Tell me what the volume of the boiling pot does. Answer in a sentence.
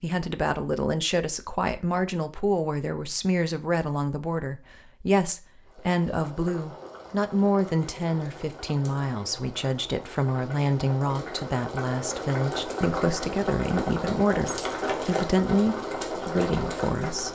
The loudness of the boiling pot goes up.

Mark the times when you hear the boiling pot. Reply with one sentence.
You can hear the boiling pot from 5.6 to 17.3 s.